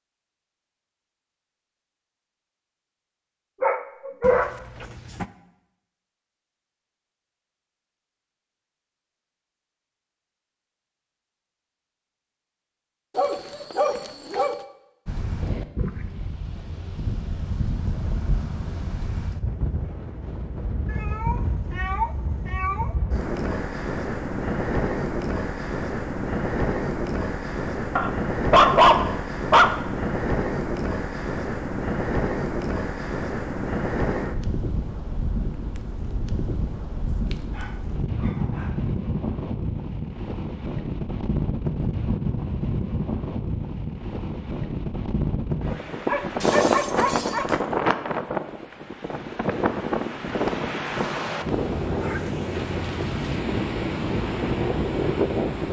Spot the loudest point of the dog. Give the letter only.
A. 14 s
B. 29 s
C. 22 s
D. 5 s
B.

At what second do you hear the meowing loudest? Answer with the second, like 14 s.
22 s.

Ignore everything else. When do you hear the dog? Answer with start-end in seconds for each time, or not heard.
3.6-4.5, 13.2-14.6, 27.9-29.8, 37.3-39.0, 46.0-47.6.